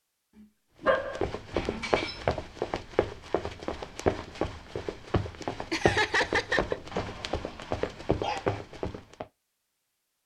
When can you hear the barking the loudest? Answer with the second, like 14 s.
1 s.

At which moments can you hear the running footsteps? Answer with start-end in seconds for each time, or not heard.
0.8-9.2.